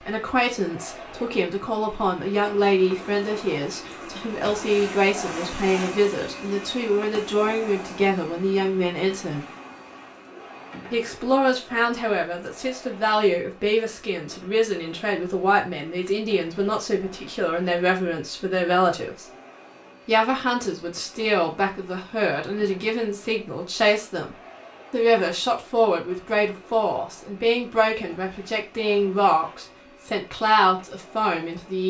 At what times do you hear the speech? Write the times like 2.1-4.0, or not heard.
0.0-9.4, 10.9-19.2, 20.1-31.8.